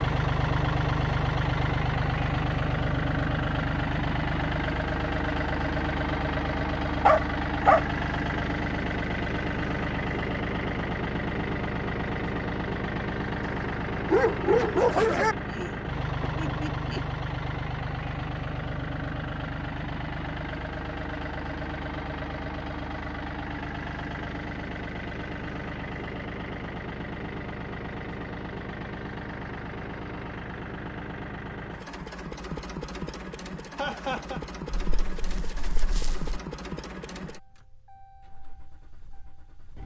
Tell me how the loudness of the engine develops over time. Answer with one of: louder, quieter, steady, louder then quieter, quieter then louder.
quieter.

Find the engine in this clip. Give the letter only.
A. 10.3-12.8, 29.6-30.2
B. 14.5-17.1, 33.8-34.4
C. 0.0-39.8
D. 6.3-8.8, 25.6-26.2
C.